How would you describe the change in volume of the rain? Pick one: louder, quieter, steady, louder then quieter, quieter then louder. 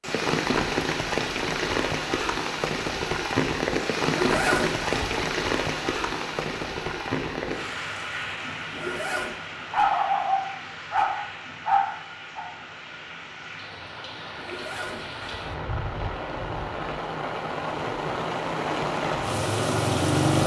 quieter then louder.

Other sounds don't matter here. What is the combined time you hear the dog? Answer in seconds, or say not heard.
3 s.